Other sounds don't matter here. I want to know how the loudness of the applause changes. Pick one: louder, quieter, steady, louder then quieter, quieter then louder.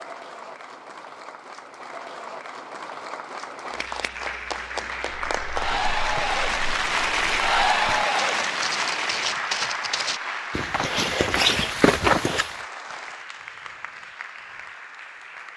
louder then quieter.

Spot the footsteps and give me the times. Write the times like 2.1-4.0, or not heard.
5.2-12.6.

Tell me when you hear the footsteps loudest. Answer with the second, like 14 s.
12 s.